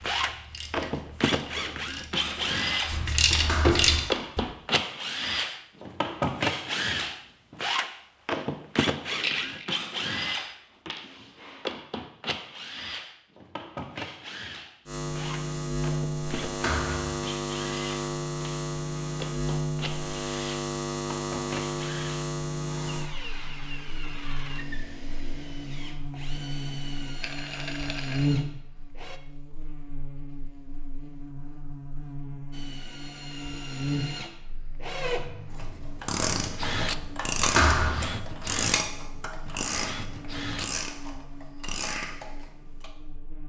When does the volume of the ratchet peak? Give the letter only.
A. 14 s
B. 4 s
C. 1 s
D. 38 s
B.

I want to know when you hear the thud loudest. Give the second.
38 s.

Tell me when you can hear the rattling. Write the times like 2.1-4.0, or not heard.
9.1-9.7, 27.2-28.3.